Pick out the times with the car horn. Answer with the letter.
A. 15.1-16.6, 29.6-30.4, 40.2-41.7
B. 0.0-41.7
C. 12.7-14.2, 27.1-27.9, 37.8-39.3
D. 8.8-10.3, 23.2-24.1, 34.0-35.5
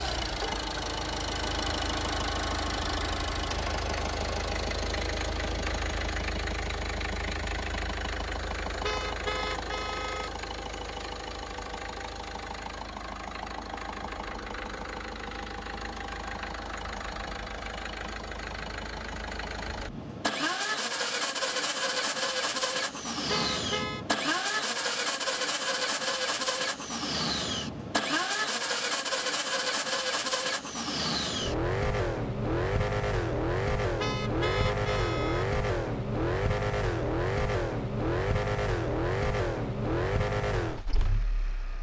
D.